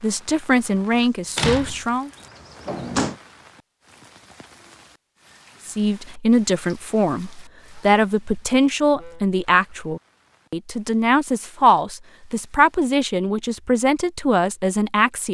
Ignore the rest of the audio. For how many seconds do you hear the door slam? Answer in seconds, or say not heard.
2 s.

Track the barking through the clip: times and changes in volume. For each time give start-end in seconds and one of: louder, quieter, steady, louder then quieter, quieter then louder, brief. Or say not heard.
not heard.